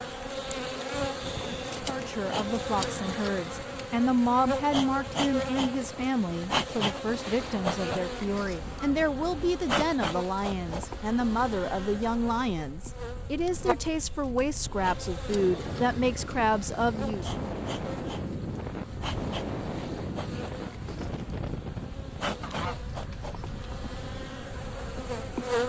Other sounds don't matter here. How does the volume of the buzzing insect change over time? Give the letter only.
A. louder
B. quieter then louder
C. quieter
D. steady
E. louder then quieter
C.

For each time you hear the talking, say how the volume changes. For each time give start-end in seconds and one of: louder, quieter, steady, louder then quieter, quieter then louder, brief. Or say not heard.
1.7-17.4 steady.